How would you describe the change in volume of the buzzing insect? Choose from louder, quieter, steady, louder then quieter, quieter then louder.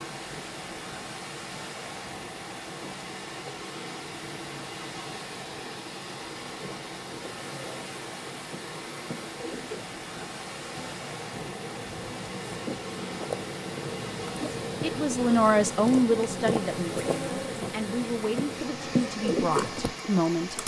louder.